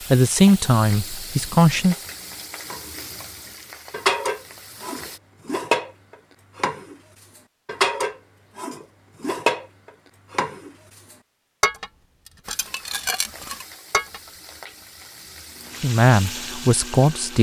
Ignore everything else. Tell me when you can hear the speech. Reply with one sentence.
The speech can be heard from 0.1 to 1.9 s and from 15.8 to 17.3 s.